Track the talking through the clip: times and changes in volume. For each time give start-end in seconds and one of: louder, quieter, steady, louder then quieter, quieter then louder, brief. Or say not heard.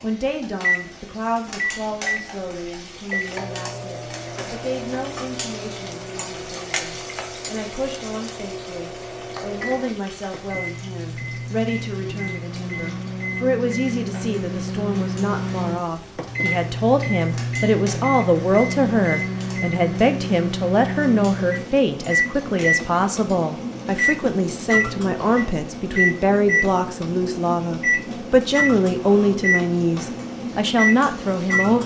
0.0-31.8 louder.